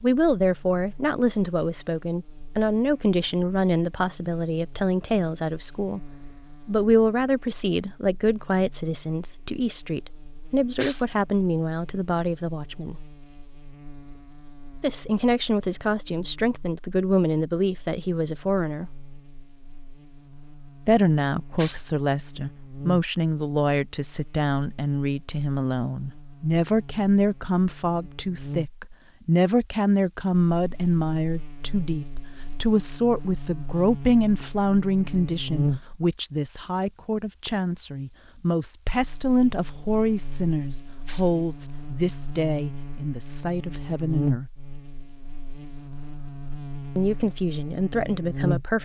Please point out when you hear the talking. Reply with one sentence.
You can hear the talking from 0.0 to 6.0 s, from 6.7 to 13.1 s, from 14.8 to 18.9 s, from 20.9 to 44.5 s and from 47.0 to 48.8 s.